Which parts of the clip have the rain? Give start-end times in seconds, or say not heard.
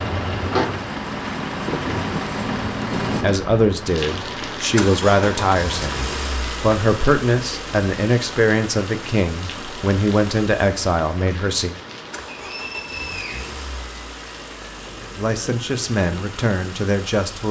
0.0-17.4.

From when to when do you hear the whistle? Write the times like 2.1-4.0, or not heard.
12.3-13.5.